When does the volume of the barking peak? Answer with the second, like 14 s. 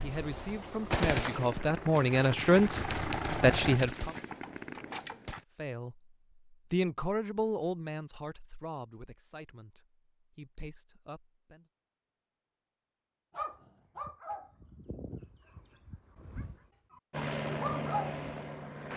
18 s.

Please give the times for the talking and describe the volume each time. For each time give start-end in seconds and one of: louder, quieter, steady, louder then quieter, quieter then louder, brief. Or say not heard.
0.0-4.2 louder
5.5-6.0 brief
6.7-11.7 quieter then louder.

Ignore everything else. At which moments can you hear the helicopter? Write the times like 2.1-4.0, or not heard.
0.0-3.8, 17.1-18.9.